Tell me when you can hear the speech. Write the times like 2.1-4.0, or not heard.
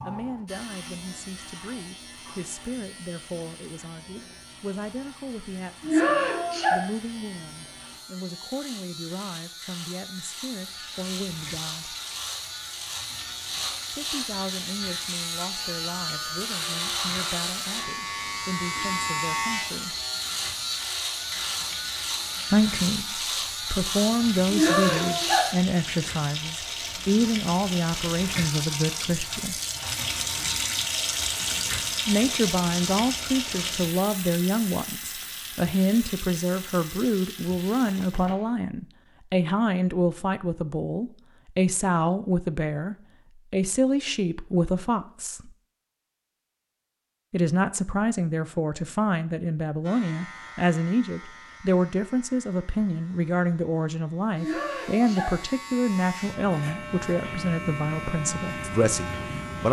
0.0-11.9, 13.9-20.0, 22.5-29.6, 32.0-45.5, 47.3-59.6.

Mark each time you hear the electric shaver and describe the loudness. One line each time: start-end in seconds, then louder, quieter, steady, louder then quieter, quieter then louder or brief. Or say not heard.
0.0-25.6 louder
49.8-59.6 quieter then louder.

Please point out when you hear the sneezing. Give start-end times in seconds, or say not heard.
5.8-6.8, 24.4-25.5, 54.4-55.4.